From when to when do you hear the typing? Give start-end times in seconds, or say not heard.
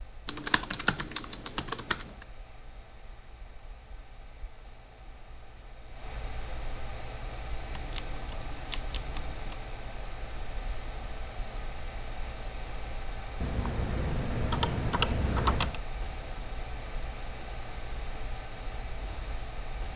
0.2-2.0, 7.7-9.6, 13.4-15.8.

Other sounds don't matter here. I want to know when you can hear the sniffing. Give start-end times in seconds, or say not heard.
not heard.